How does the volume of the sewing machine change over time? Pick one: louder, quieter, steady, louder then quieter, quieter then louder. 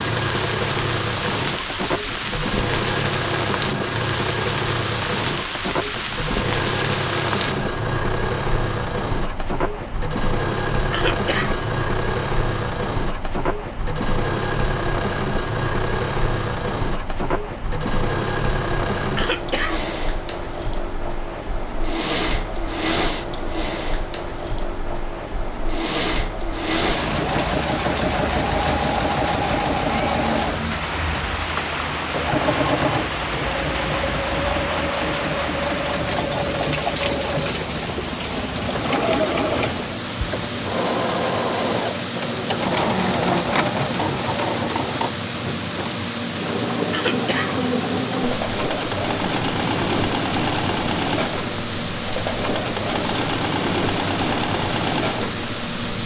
steady.